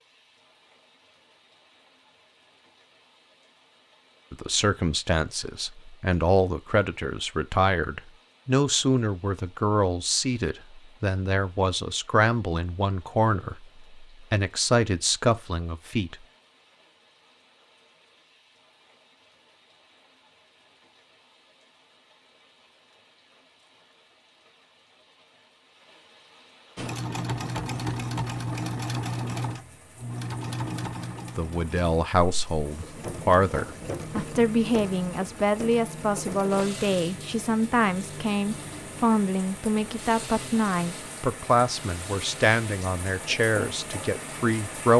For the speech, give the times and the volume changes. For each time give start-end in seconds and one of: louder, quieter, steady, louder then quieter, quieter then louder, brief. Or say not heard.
4.3-16.2 steady
31.4-44.9 steady.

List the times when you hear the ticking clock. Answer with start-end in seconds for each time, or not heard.
not heard.